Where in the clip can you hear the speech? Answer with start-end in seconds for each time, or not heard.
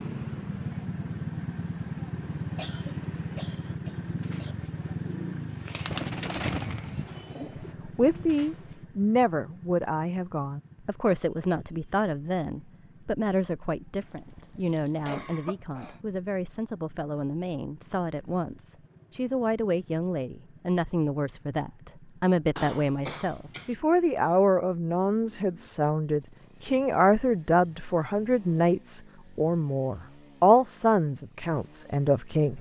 7.4-32.5.